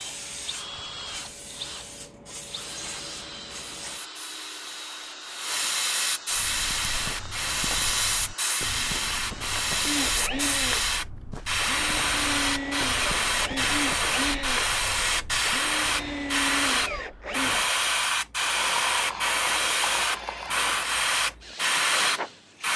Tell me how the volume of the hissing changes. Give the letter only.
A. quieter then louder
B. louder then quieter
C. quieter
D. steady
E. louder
E.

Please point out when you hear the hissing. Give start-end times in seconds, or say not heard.
0.0-22.7.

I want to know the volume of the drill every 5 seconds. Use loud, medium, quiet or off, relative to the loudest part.
medium, medium, loud, loud, medium.